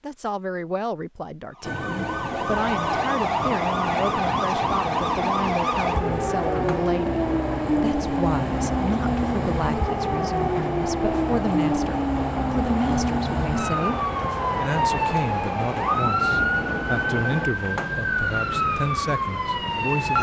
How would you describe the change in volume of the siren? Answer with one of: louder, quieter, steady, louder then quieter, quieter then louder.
steady.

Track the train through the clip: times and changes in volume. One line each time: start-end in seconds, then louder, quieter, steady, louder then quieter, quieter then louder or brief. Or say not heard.
1.6-17.5 steady.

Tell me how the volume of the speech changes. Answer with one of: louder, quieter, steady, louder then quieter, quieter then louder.
steady.